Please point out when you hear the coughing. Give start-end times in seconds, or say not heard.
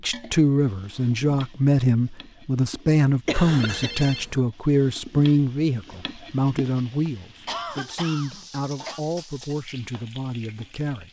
3.2-3.9, 7.0-9.0.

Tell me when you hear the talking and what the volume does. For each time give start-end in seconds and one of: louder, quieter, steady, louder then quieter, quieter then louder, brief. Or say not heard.
0.0-11.0 quieter.